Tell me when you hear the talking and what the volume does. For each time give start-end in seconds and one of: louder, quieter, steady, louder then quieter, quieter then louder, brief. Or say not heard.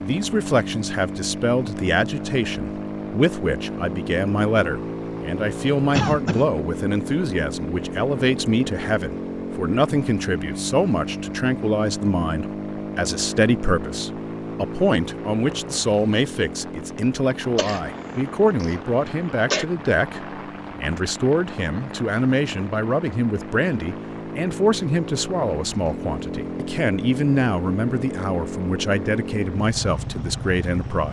0.0-31.0 steady.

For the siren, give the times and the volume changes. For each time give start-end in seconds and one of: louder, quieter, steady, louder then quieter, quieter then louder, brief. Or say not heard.
not heard.